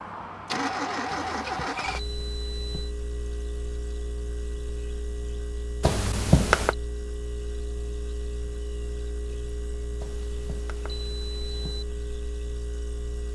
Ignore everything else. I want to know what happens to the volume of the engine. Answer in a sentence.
The volume of the engine goes down.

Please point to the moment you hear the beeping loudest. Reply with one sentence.
The loudest moment of the beeping is at 6 seconds.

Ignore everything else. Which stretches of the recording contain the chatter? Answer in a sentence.
You can't hear the chatter here.